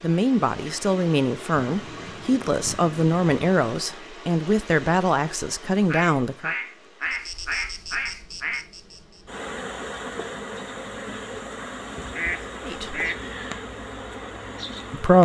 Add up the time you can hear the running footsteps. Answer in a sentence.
You can't hear the running footsteps here.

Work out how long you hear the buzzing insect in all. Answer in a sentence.
You can hear the buzzing insect for 8 seconds altogether.